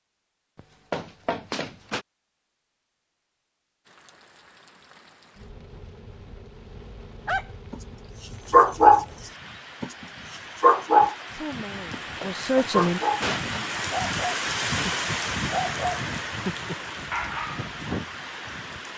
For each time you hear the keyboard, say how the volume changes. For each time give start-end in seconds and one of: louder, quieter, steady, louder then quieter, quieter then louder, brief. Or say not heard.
not heard.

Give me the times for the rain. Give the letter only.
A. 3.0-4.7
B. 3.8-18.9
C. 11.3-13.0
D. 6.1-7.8
B.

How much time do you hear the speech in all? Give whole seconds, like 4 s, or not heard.
2 s.